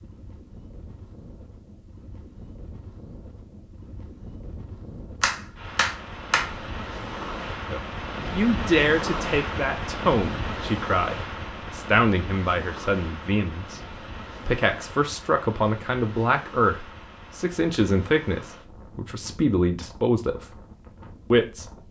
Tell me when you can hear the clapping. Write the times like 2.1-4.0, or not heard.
5.2-6.5.